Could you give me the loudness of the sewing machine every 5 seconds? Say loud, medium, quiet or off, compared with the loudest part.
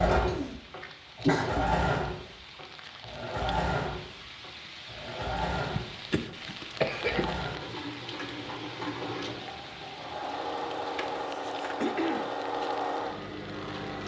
loud, medium, loud.